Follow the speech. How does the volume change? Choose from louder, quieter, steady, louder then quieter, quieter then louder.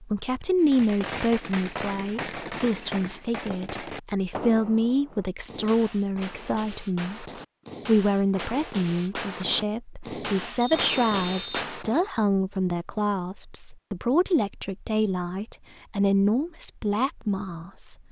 steady.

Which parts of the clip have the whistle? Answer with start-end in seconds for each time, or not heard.
10.6-11.7.